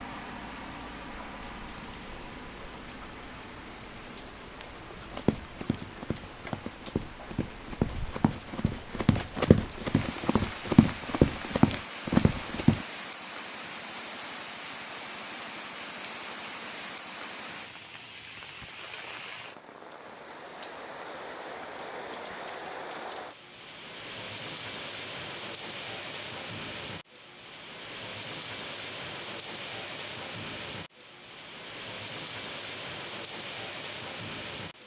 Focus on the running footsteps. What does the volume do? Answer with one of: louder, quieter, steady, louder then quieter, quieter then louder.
louder.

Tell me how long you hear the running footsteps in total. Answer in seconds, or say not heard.
8 s.